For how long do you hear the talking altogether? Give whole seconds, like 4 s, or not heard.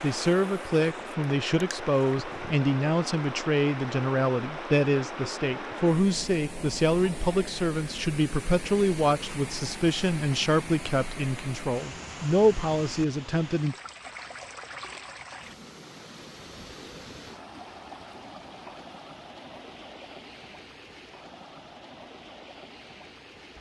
14 s.